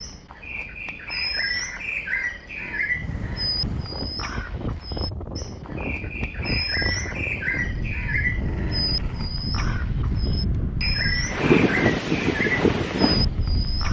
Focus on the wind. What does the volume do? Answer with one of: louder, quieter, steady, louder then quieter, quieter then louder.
louder.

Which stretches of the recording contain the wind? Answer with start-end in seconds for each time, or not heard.
2.9-13.8.